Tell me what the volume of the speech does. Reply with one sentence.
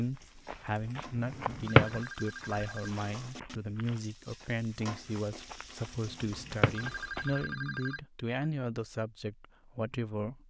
The loudness of the speech stays about the same.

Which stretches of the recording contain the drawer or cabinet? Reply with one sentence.
You can hear the drawer or cabinet from 1.4 to 2.0 s and from 6.4 to 6.8 s.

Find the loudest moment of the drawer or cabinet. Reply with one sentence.
The volume of the drawer or cabinet peaks at 2 seconds.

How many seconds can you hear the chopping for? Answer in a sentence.
You can't hear the chopping here.